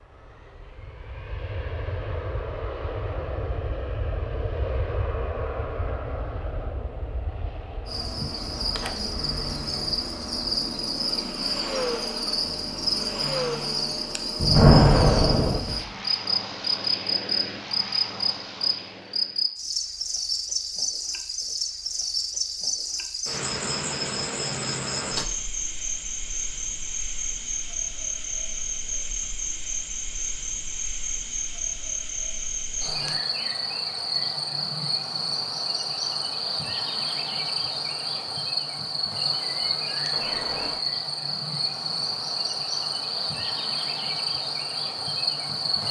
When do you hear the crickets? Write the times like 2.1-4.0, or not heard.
7.8-45.8.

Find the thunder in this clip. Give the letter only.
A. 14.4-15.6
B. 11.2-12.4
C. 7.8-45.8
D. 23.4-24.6
A.